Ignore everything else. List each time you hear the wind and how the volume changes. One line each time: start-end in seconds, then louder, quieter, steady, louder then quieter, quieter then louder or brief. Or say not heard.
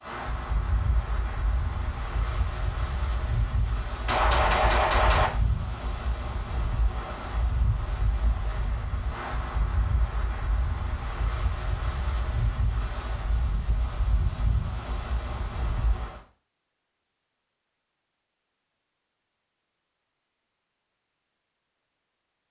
0.0-16.2 steady.